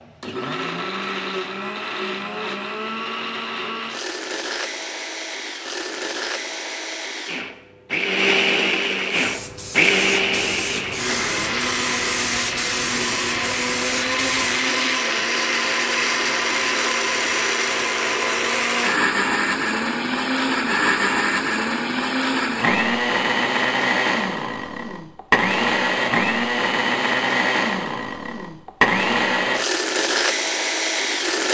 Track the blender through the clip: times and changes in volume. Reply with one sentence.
The blender can be heard from 0.0 to 31.4 s, getting louder.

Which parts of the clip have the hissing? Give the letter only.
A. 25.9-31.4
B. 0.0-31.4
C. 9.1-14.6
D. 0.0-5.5
C.